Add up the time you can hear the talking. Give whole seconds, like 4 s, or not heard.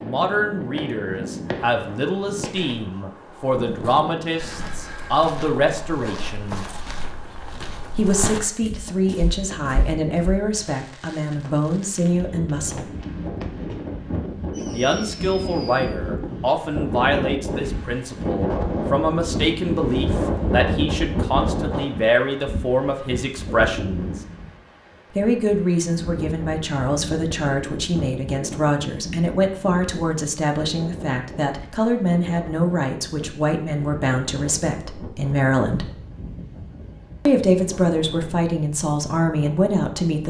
35 s.